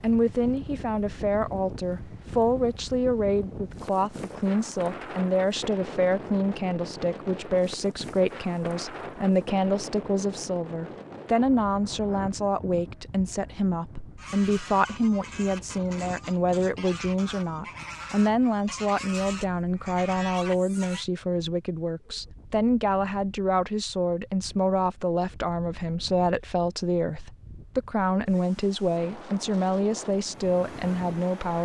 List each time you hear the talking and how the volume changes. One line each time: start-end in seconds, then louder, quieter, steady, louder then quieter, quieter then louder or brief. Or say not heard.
0.0-31.5 steady.